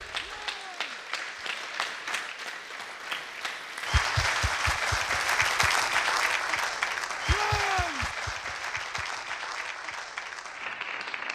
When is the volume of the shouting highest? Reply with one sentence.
The loudest moment of the shouting is at 8 seconds.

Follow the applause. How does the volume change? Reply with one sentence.
The volume of the applause goes up, then down.